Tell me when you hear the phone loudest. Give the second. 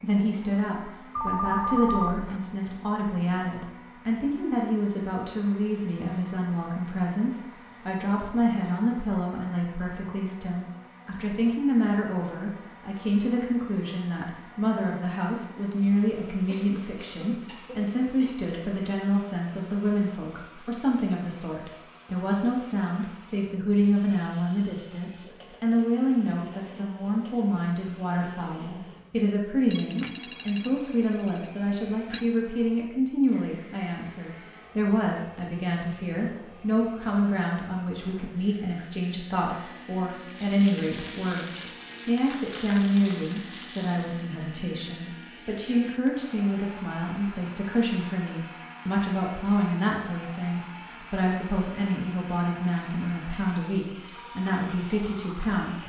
2 s.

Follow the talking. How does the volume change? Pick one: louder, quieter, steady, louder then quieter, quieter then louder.
steady.